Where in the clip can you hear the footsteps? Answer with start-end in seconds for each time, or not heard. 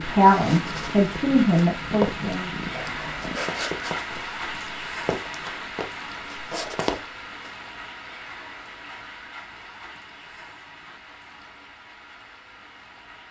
0.1-7.5.